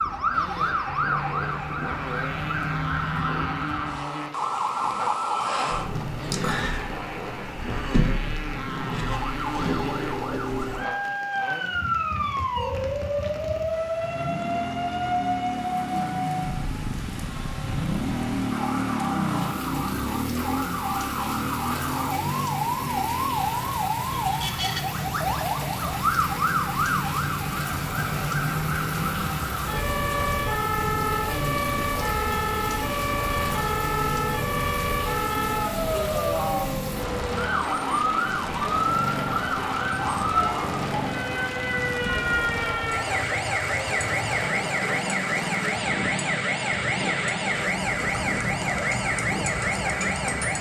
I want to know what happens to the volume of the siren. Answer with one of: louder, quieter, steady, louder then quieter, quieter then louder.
steady.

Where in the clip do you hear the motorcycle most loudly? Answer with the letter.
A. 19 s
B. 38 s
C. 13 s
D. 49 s
A.